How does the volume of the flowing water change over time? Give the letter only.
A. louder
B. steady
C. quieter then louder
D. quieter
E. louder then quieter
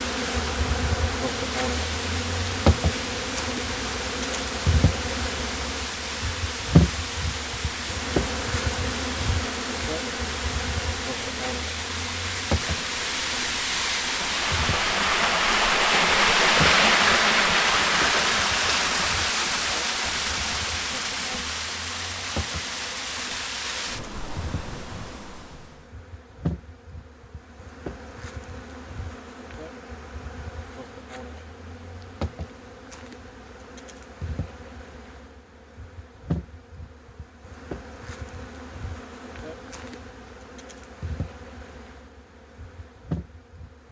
E.